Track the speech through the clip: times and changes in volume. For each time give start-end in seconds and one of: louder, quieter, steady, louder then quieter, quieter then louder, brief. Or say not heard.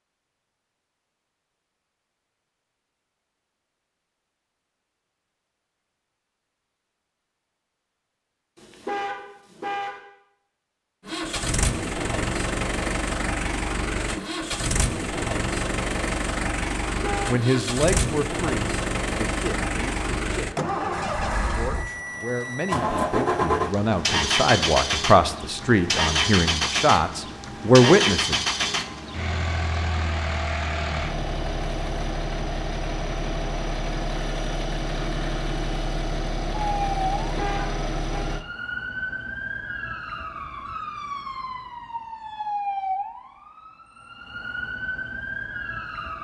17.2-28.4 quieter then louder.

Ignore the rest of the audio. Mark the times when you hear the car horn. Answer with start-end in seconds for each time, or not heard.
8.6-9.9, 16.9-17.4, 37.2-38.2.